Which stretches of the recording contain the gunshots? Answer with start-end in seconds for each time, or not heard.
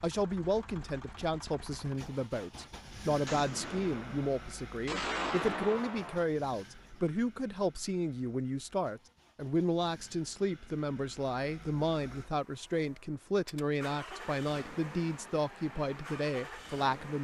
3.2-6.2.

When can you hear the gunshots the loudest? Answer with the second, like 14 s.
5 s.